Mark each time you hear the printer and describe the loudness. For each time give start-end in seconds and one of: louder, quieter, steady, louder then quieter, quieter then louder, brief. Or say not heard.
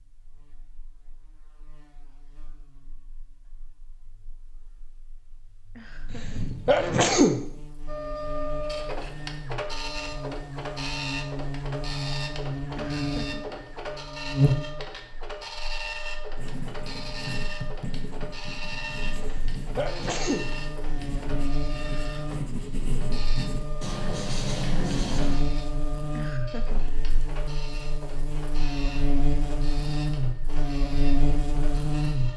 7.8-32.3 quieter.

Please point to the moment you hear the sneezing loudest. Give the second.
7 s.